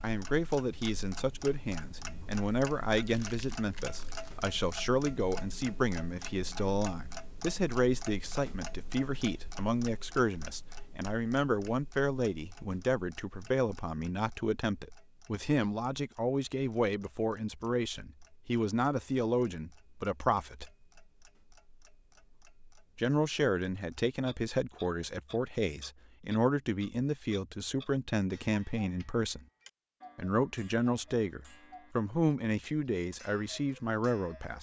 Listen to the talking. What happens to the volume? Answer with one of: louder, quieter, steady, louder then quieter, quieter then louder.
steady.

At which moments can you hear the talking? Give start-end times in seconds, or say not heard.
0.0-20.7, 22.9-29.4, 30.1-34.5.